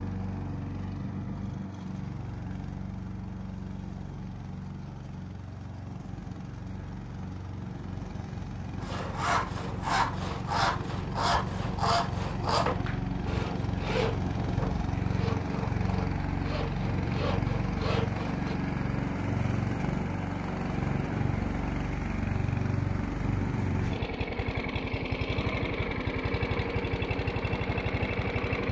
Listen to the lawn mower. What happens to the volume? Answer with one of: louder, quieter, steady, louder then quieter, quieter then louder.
louder.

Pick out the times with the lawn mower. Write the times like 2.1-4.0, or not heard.
0.0-28.6.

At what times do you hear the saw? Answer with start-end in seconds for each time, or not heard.
8.8-18.6.